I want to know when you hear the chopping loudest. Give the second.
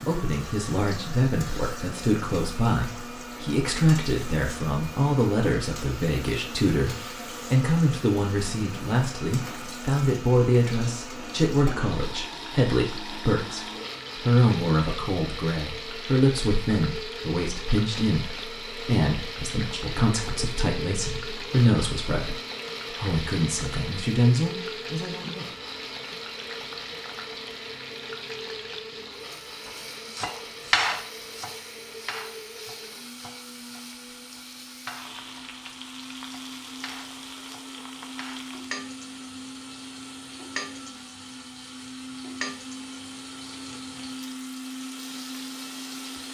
31 s.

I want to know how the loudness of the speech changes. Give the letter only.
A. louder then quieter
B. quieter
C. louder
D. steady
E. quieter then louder
D.